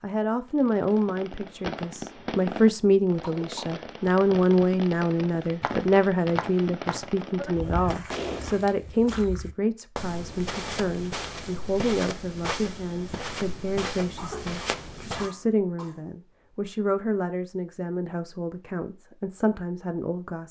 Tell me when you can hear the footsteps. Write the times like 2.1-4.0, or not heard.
5.3-15.3.